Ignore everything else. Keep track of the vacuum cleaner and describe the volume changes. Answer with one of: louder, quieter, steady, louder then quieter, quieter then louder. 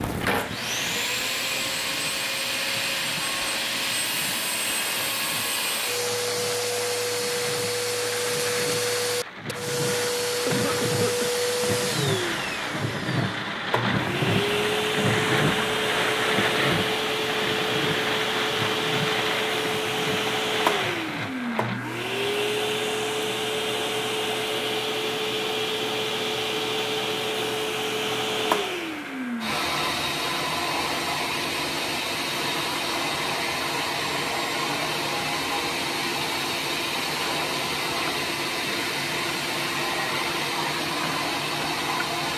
steady.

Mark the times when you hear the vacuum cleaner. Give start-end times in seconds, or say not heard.
0.0-42.3.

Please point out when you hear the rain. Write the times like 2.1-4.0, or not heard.
0.0-21.8.